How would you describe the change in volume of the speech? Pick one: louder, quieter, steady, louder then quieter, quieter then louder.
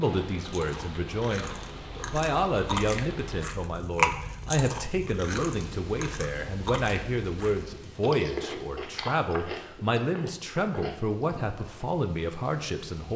steady.